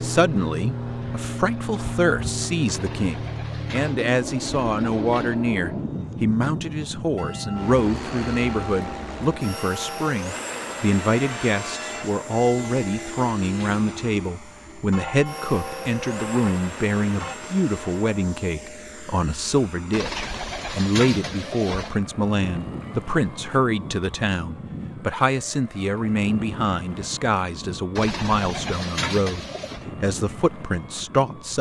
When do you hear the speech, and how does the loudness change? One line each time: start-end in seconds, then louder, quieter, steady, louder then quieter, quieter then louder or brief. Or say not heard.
0.0-31.5 steady.